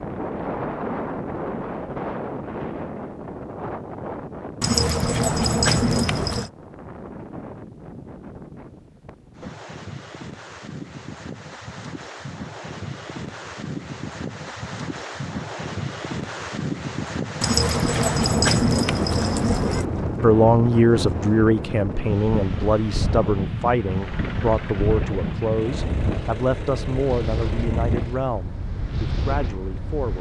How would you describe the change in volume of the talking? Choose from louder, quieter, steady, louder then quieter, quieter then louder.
quieter.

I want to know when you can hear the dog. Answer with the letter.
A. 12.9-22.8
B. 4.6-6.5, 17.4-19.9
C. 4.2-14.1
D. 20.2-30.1
B.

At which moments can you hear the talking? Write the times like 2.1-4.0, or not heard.
20.2-30.1.